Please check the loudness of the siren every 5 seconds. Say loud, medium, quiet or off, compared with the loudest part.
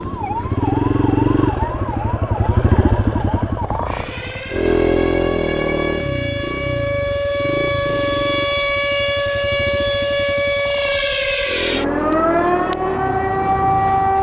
medium, loud, loud.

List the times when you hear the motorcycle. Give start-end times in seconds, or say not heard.
0.0-13.9.